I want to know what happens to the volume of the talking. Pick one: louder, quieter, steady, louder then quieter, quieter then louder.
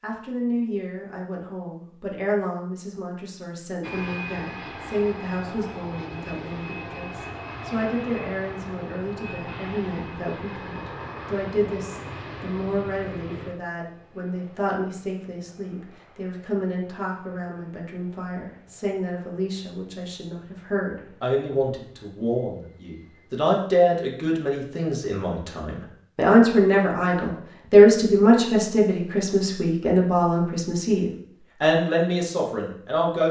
louder.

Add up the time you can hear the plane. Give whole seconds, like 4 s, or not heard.
20 s.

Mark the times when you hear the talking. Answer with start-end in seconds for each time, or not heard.
0.0-33.2.